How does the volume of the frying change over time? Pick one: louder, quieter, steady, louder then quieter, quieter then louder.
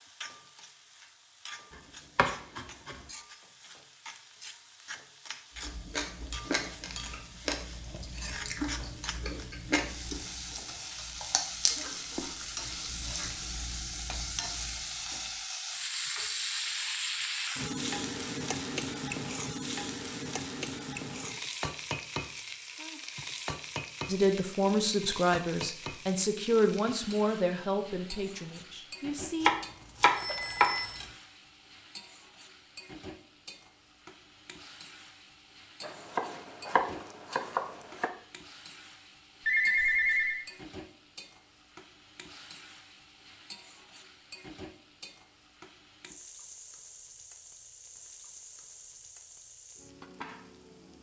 louder then quieter.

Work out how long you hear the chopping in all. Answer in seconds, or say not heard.
5 s.